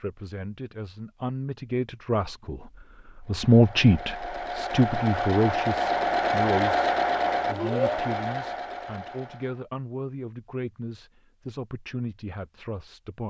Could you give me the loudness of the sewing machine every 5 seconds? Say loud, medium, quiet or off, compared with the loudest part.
medium, loud, off.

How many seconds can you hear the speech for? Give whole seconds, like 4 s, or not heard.
13 s.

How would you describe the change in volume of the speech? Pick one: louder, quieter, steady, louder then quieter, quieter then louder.
louder then quieter.